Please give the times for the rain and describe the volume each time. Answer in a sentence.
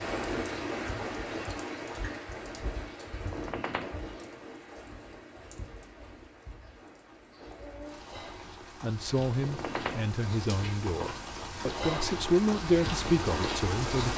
The rain can be heard from 0.0 to 14.1 s, getting quieter then louder.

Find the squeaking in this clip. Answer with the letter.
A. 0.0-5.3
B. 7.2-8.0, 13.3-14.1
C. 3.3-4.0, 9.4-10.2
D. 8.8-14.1
C.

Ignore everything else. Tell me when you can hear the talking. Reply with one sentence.
The talking can be heard from 8.8 to 14.1 s.